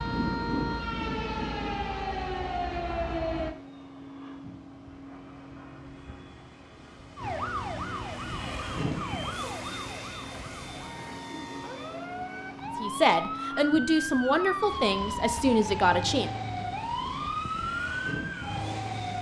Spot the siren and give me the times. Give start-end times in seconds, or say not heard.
0.0-3.5, 7.2-19.1.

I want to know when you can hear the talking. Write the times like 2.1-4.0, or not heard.
12.8-16.3.